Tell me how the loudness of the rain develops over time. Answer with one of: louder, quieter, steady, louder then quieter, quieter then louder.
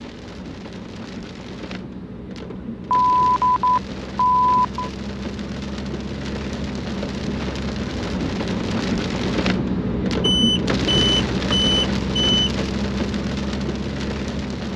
louder.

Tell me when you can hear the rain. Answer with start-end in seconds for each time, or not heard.
0.0-14.7.